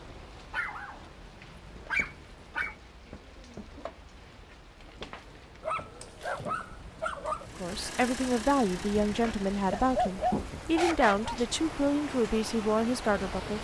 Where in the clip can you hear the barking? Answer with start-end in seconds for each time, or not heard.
0.5-2.8, 5.6-7.5, 9.5-11.3.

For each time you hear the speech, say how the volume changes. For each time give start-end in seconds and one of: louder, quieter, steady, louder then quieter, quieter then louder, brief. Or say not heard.
7.5-13.5 steady.